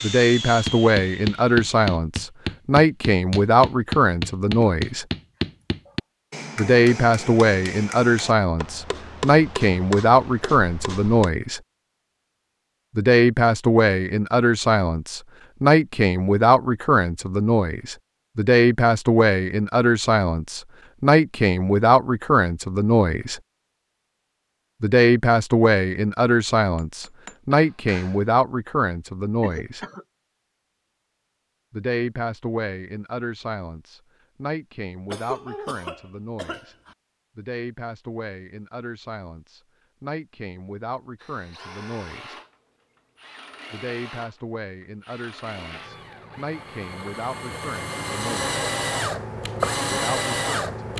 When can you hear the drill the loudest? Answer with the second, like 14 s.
50 s.